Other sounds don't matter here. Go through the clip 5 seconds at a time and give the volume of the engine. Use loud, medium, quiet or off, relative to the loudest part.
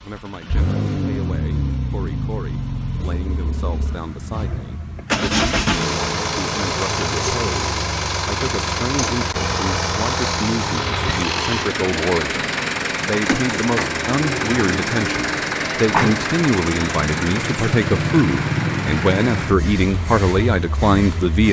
medium, loud, loud, loud, medium.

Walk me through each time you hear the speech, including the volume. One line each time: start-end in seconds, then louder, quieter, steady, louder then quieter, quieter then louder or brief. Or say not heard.
0.0-21.4 louder.